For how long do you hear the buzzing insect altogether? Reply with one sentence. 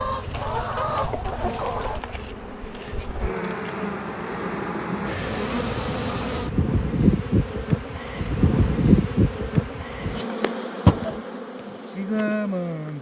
You can hear the buzzing insect for 13 seconds altogether.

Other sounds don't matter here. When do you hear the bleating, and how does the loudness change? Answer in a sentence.
The bleating can't be heard in this clip.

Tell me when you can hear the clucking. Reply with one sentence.
The clucking can be heard from 0.0 to 2.0 s.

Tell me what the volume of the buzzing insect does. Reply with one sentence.
The loudness of the buzzing insect goes up.